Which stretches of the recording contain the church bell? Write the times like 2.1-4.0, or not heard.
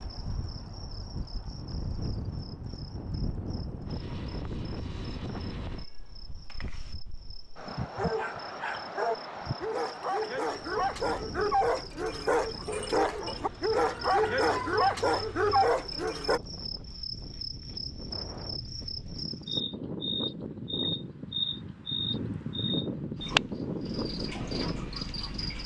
not heard.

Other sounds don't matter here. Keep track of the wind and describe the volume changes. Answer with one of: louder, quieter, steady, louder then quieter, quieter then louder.
quieter then louder.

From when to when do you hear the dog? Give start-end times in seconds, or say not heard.
7.9-16.4.